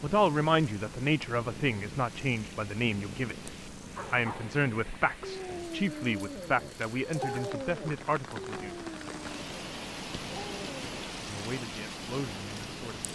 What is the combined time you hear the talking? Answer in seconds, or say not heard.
10 s.